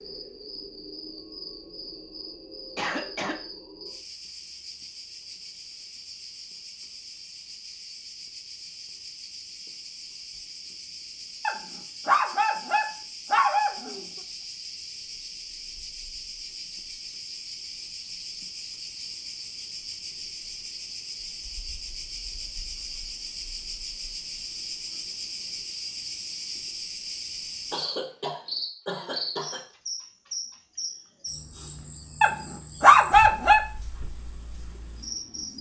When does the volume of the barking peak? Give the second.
33 s.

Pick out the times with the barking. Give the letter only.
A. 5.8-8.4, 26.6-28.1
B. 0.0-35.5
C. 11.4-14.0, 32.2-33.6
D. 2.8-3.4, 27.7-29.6
C.